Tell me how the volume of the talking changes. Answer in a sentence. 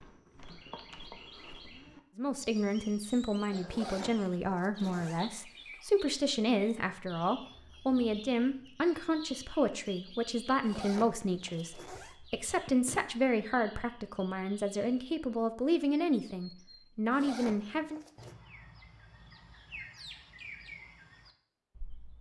The loudness of the talking stays about the same.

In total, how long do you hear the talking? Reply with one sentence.
The talking can be heard for 16 seconds in total.